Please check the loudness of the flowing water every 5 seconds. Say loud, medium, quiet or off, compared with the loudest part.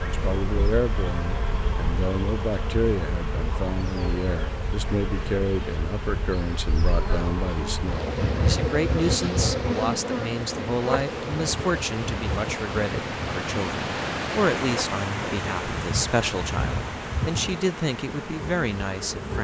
medium, medium, loud, loud.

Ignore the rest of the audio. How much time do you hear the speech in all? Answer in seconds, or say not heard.
19 s.